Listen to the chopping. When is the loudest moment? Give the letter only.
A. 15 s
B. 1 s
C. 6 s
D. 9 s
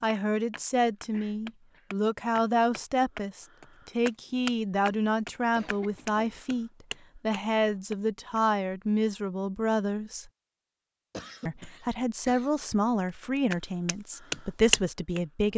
A.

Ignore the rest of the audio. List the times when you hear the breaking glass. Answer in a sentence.
The breaking glass can't be heard in this clip.